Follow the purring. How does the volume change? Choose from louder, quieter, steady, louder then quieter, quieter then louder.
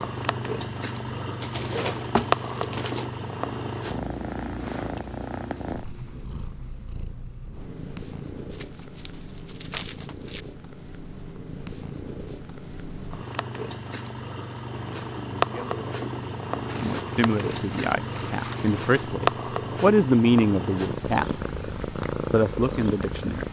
quieter then louder.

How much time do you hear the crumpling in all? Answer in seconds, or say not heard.
6 s.